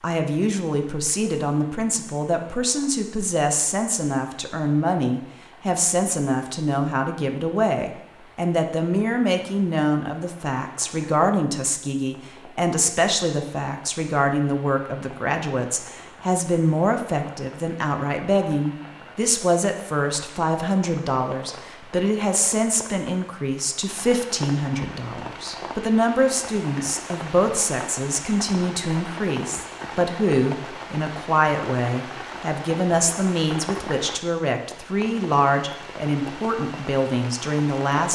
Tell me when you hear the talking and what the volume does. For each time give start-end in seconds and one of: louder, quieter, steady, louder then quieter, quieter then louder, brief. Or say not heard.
0.0-38.0 steady.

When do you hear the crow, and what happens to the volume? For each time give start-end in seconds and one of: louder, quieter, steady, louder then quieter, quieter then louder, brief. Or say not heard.
not heard.